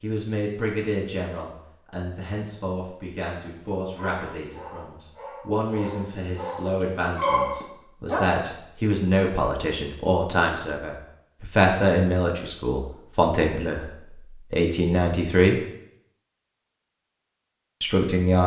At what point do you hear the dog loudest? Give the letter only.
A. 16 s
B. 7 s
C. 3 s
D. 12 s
B.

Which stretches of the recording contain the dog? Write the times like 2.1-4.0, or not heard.
3.9-8.4.